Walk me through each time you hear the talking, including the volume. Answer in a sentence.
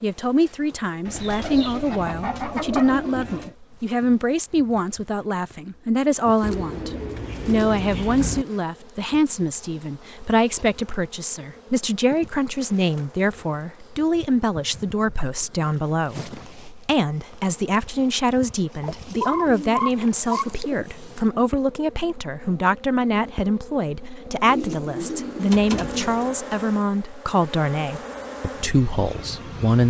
You can hear the talking from 0.0 to 29.8 s, at a steady volume.